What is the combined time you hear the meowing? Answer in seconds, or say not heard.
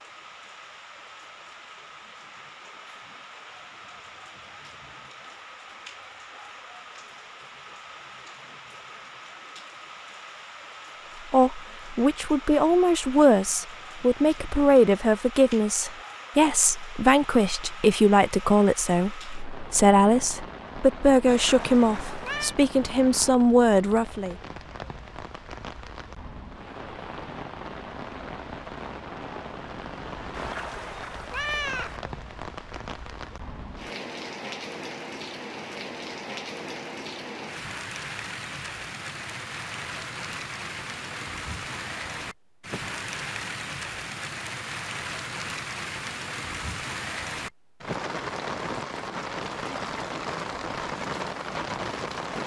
3 s.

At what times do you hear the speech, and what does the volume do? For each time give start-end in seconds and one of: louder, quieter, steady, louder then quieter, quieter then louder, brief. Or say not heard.
11.3-24.4 steady.